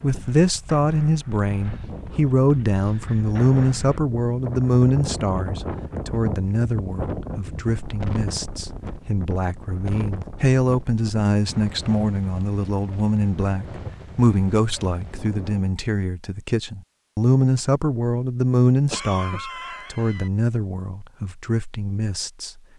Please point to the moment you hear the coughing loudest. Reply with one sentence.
The volume of the coughing peaks at 19 seconds.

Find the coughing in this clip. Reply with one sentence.
The coughing can be heard from 18.9 to 20.3 s.